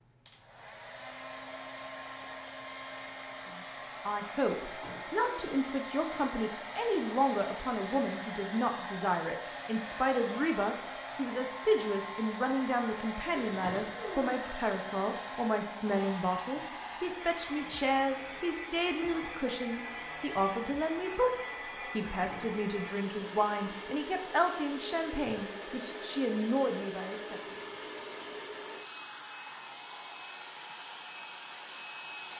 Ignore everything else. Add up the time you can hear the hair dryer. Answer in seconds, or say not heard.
32 s.